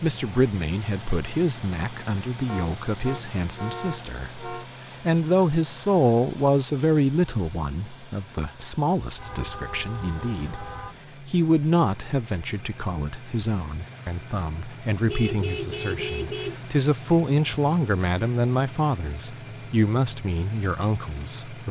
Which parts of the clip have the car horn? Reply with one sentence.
The car horn can be heard from 2.5 to 4.7 s, from 9.2 to 10.9 s and from 15.1 to 16.6 s.